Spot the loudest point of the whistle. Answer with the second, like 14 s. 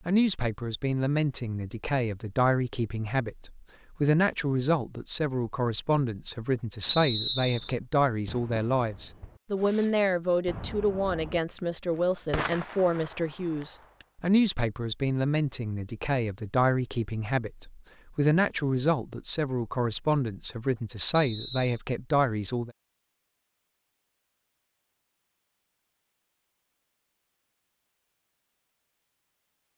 7 s.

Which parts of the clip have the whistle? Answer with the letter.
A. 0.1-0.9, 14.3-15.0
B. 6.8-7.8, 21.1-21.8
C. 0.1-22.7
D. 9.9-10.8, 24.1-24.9
B.